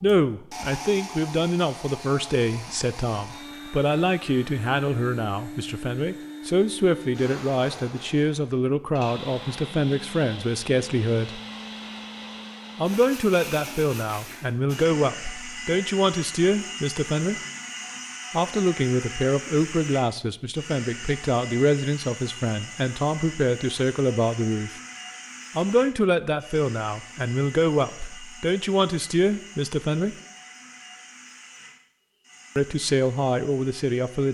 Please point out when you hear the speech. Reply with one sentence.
You can hear the speech from 0.0 to 11.4 s, from 12.8 to 17.4 s, from 18.3 to 24.7 s, from 25.6 to 30.1 s and from 32.5 to 34.2 s.